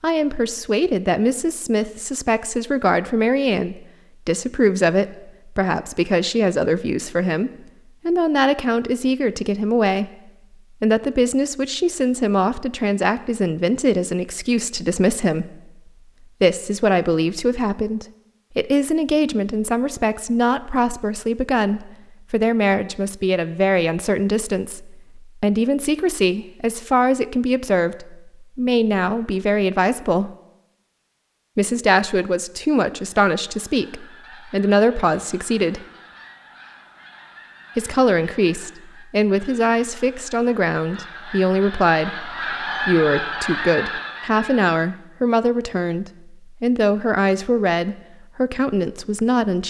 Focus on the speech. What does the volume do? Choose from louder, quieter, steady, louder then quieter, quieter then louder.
steady.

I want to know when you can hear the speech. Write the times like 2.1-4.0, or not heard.
0.0-15.7, 16.4-30.3, 31.6-35.9, 37.8-49.6.